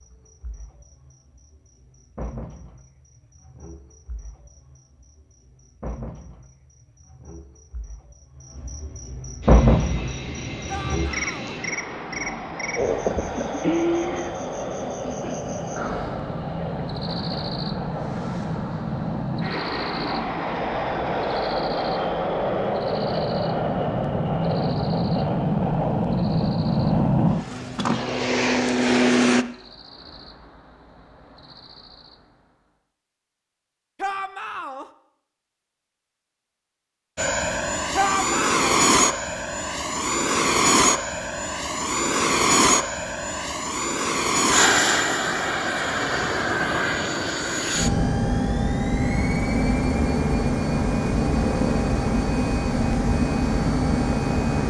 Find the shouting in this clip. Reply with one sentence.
You can hear the shouting from 10.7 to 11.6 s, from 34.0 to 34.9 s and from 38.0 to 38.7 s.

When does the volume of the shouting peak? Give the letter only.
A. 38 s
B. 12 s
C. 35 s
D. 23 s
A.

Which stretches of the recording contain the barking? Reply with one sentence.
You can't hear the barking here.